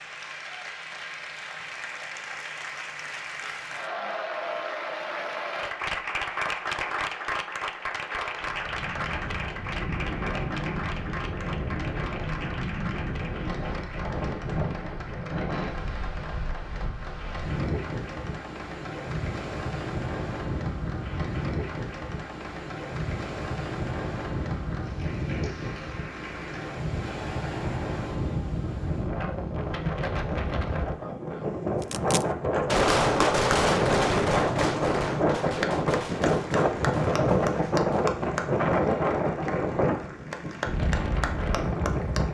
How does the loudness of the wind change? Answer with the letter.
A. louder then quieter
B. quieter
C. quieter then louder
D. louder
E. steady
D.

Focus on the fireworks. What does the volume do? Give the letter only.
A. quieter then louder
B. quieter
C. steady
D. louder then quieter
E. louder
B.